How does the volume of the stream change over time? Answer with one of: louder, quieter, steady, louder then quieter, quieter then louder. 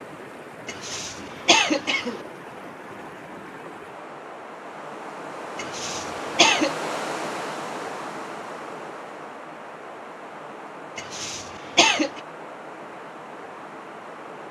louder then quieter.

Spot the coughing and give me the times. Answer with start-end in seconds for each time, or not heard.
0.7-2.2, 5.5-6.8, 10.9-12.2.